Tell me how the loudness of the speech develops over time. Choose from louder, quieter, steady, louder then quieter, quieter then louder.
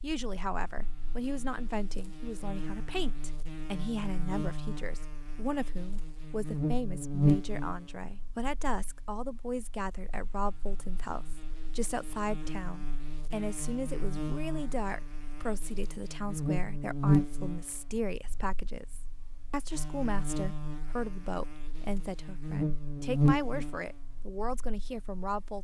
steady.